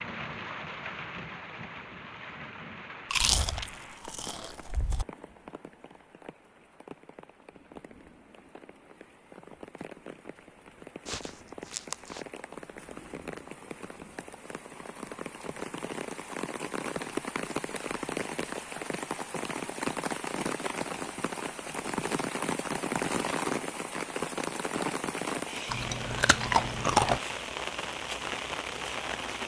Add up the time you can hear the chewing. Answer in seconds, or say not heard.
5 s.